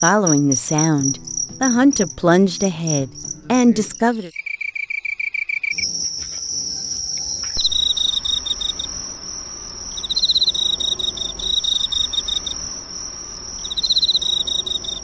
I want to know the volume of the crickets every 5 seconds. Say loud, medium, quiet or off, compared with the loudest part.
medium, loud, loud.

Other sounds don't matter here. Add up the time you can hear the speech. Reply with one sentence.
You can hear the speech for 4 seconds altogether.